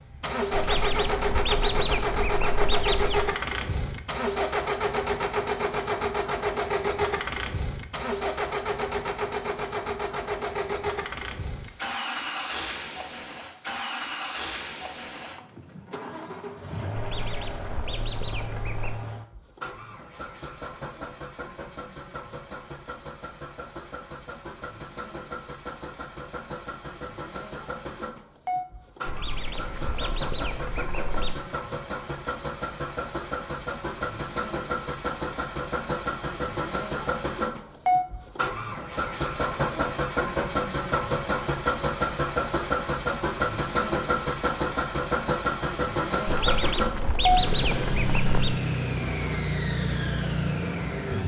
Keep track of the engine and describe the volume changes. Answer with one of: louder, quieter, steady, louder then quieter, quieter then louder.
quieter then louder.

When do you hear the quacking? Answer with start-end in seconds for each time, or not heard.
0.5-3.3, 16.9-19.0, 29.1-31.4, 46.2-48.6.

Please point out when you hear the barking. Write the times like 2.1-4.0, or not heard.
not heard.